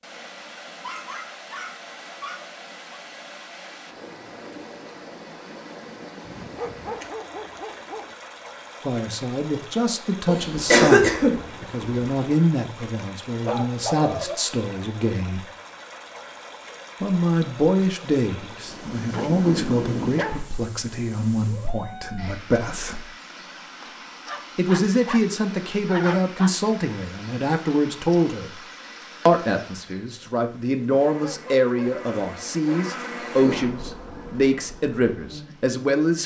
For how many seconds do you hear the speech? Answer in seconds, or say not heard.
24 s.